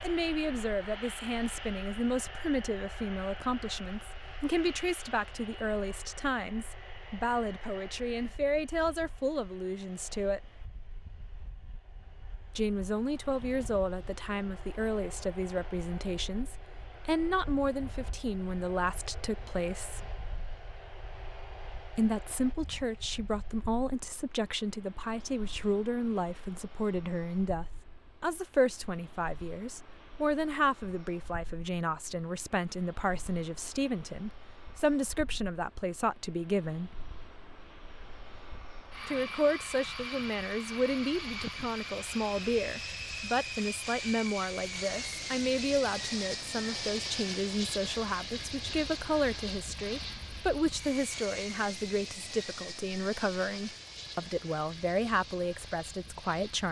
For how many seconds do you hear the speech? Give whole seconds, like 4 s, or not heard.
51 s.